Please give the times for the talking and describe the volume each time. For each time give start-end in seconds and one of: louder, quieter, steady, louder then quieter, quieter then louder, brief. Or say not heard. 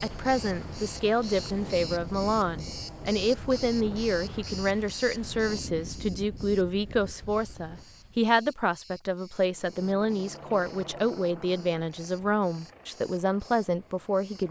0.0-14.4 steady.